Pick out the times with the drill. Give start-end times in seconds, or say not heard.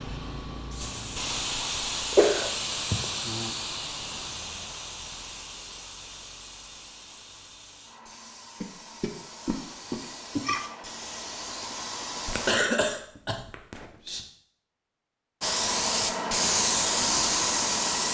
not heard.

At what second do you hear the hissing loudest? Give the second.
17 s.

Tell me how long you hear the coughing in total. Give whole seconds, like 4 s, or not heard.
5 s.